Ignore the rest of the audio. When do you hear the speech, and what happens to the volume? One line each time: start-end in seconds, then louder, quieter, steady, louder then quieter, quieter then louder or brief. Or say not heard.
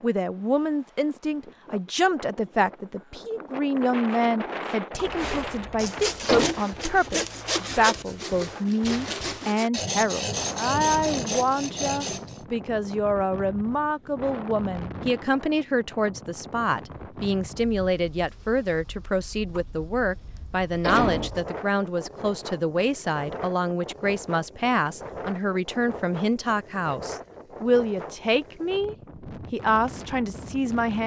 0.0-31.0 steady.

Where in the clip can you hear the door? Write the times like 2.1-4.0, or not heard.
5.0-6.5, 19.5-21.3.